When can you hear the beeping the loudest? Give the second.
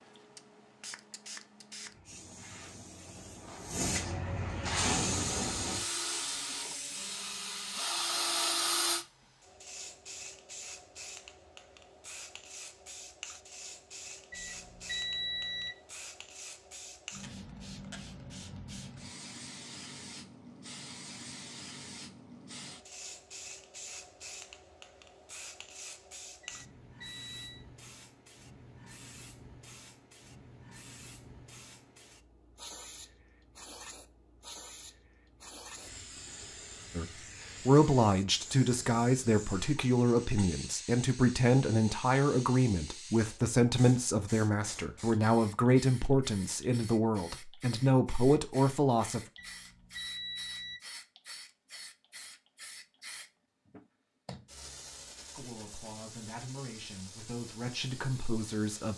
15 s.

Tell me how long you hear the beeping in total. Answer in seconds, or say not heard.
4 s.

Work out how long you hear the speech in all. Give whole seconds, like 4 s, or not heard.
16 s.